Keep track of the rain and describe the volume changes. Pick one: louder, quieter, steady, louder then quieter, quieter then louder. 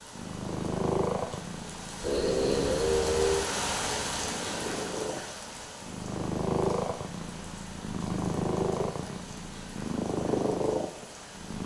louder then quieter.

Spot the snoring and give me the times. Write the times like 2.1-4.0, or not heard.
2.0-3.5.